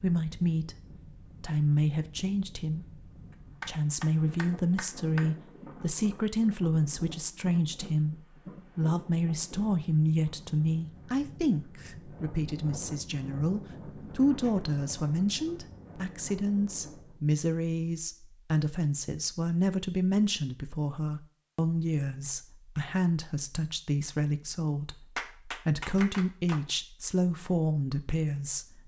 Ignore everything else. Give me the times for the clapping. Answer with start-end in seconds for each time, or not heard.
3.6-5.2, 25.1-26.6.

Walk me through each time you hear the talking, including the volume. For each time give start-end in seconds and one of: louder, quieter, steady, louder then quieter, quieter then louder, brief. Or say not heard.
0.0-0.8 brief
1.4-3.0 brief
3.6-28.8 steady.